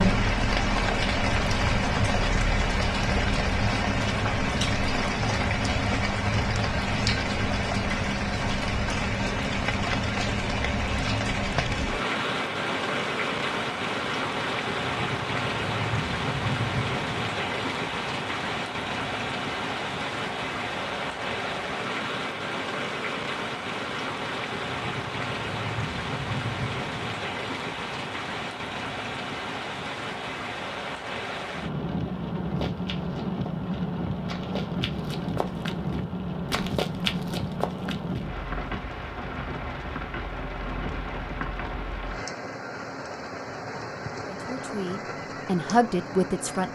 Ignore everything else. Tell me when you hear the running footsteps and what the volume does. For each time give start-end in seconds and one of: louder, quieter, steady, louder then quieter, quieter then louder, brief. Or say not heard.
32.5-38.2 louder.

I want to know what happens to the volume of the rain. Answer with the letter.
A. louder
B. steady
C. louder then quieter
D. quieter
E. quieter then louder
D.